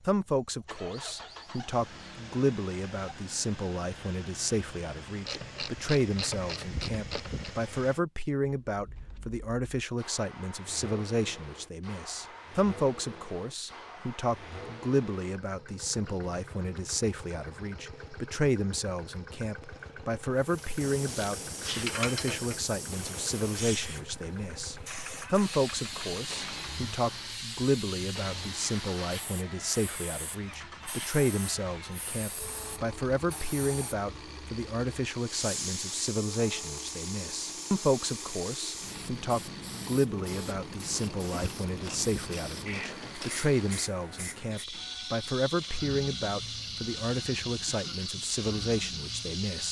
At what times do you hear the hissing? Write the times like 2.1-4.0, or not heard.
20.4-49.6.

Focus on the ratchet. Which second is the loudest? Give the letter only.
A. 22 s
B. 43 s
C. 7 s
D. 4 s
A.